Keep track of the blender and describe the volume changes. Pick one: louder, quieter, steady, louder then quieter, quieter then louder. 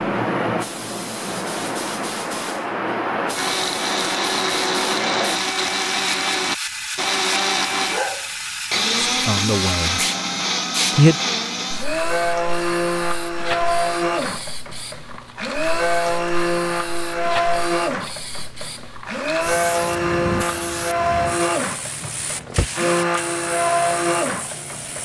steady.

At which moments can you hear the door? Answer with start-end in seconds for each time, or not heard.
22.0-22.7.